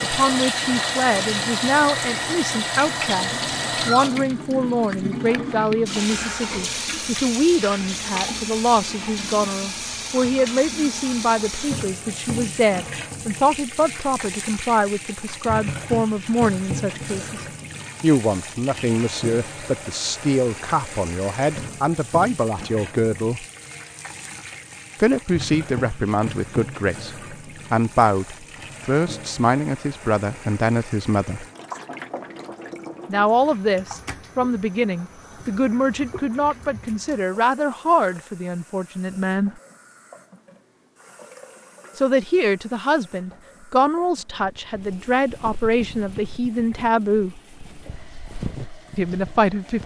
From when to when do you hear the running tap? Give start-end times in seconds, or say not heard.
0.0-49.8.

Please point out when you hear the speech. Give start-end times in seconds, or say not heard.
0.0-23.4, 24.9-31.4, 33.0-39.5, 42.0-47.4, 49.0-49.8.